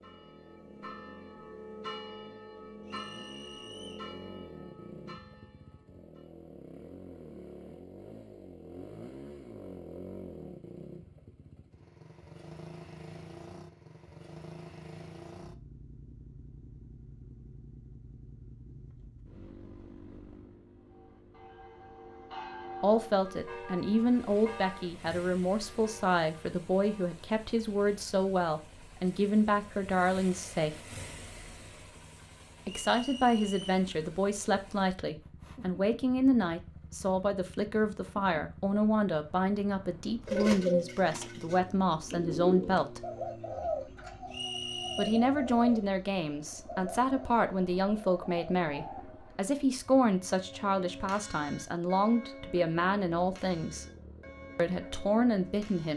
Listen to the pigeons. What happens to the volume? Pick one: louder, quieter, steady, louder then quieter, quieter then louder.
quieter.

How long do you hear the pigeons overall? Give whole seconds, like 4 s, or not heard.
9 s.